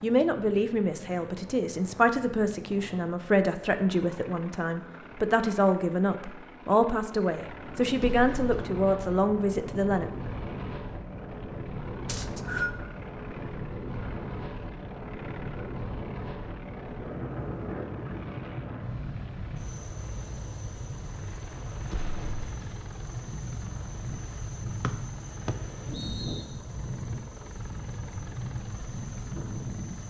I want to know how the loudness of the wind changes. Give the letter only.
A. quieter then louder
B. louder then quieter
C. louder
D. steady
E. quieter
D.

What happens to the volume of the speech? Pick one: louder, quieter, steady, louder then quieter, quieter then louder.
steady.